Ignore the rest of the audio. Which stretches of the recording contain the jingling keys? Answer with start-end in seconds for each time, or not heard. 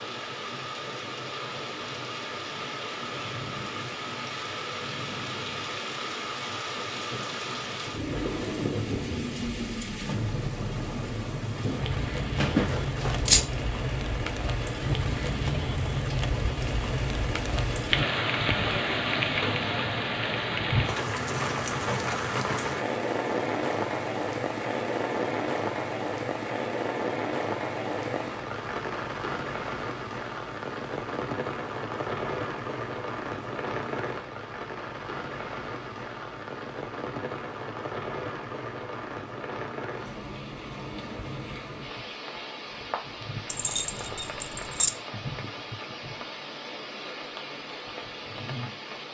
12.4-13.4, 43.5-44.9.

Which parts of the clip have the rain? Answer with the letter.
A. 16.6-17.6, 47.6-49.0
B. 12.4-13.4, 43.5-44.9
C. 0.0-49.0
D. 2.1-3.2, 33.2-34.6
C.